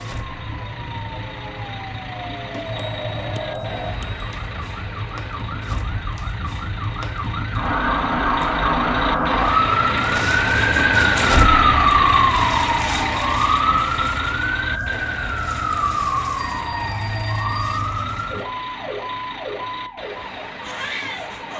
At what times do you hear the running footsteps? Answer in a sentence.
You can't hear the running footsteps here.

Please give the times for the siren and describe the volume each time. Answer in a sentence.
You can hear the siren from 0.0 to 21.5 s, getting louder then quieter.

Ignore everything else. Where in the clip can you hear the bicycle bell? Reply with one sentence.
You can hear the bicycle bell from 2.6 to 4.2 s and from 16.4 to 17.8 s.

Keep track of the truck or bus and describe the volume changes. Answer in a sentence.
The volume of the truck or bus goes up, then down.